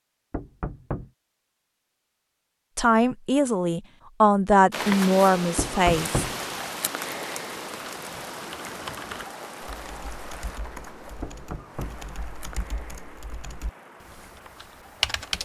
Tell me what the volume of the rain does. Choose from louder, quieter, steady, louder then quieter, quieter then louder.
quieter.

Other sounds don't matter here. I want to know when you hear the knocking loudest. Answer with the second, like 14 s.
6 s.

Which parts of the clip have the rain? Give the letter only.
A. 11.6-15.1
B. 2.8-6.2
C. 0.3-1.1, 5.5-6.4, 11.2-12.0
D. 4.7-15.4
D.